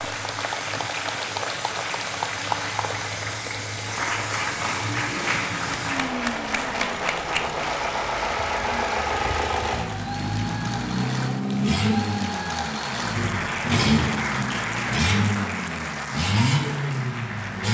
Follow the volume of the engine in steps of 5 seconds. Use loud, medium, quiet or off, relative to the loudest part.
medium, loud, loud, loud.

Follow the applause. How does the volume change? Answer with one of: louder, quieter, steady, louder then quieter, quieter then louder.
steady.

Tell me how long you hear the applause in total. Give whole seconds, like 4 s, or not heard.
18 s.